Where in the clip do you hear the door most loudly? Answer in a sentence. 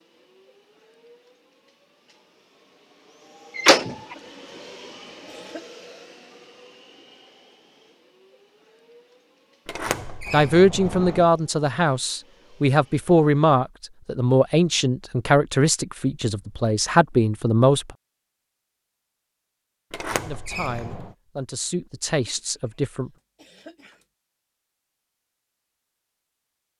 The volume of the door peaks at 4 seconds.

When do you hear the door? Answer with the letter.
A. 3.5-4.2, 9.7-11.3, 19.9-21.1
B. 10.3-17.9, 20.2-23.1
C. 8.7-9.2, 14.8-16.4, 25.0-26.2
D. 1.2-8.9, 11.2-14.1
A.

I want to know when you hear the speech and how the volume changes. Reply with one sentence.
You can hear the speech from 10.3 to 17.9 s, at a steady volume; and briefly from 20.2 to 23.1 s.